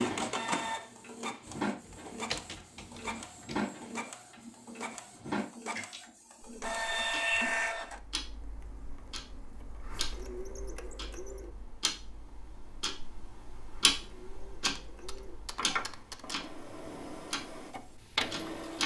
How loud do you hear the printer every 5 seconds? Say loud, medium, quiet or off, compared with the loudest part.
loud, loud, quiet, loud.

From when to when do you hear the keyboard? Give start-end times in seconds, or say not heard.
1.4-3.6, 14.7-16.4.